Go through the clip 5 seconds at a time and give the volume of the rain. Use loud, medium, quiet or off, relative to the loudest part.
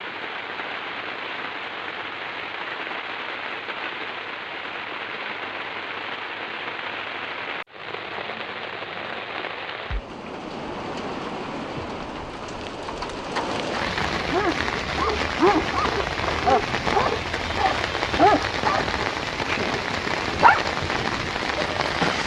medium, medium, loud, loud, loud.